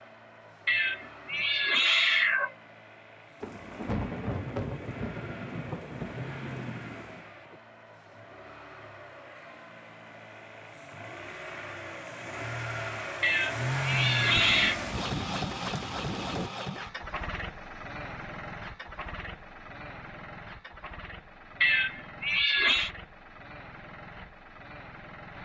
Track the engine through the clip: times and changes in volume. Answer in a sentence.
The engine can be heard from 0.0 to 25.3 s, getting louder then quieter.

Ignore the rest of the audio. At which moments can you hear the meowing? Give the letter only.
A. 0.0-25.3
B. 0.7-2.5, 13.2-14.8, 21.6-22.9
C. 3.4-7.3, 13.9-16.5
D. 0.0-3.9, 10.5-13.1
B.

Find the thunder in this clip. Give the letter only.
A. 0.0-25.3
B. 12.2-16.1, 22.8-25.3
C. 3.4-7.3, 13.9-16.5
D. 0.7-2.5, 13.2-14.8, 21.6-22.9
C.